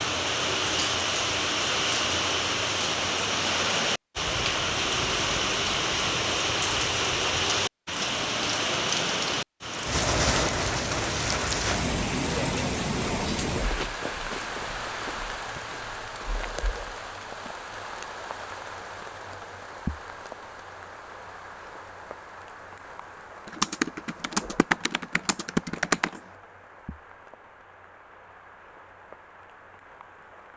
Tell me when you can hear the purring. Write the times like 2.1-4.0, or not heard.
not heard.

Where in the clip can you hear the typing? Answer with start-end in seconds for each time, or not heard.
23.4-26.2.